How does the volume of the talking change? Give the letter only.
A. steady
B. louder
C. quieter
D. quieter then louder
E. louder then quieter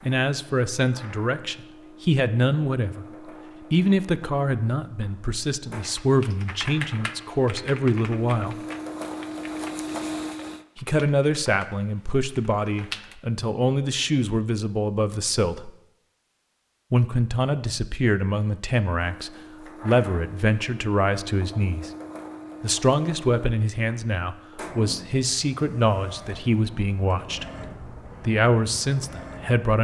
A.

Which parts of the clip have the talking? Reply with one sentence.
You can hear the talking from 0.1 to 3.0 s, from 3.7 to 8.6 s, from 10.8 to 15.7 s, from 16.9 to 21.9 s and from 22.6 to 29.7 s.